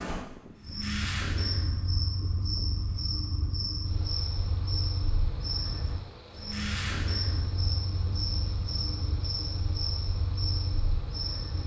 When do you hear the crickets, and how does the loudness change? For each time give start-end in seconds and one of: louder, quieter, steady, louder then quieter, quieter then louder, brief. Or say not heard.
0.0-11.6 steady.